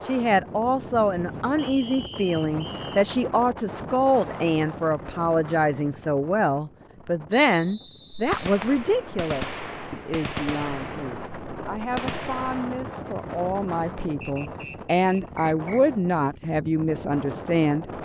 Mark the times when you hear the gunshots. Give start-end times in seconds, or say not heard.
8.1-12.7.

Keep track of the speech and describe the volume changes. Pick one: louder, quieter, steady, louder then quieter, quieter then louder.
quieter then louder.